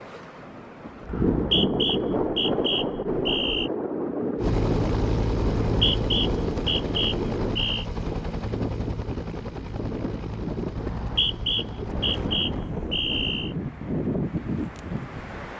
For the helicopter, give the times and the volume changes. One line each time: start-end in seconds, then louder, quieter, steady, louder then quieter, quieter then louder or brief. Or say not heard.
4.3-12.2 quieter.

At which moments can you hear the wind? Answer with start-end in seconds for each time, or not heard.
0.0-15.5.